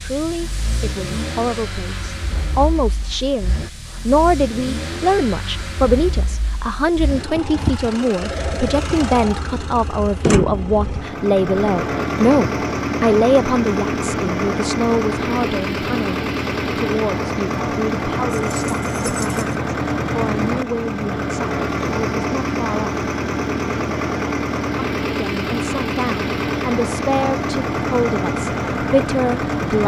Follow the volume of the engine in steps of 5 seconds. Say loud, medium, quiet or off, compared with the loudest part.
medium, medium, loud, loud, loud, loud.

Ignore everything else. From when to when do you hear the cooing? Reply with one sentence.
The cooing can't be heard in this clip.